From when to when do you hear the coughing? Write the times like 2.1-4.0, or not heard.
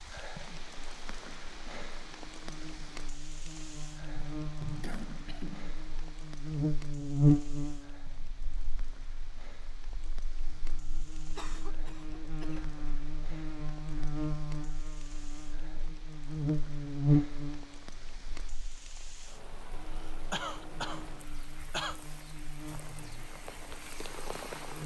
4.0-5.8, 11.3-12.8, 19.9-22.0.